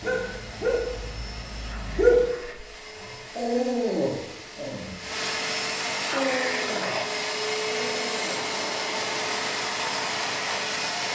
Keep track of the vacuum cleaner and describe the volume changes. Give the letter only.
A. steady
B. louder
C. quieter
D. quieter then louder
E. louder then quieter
B.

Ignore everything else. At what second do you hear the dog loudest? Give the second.
2 s.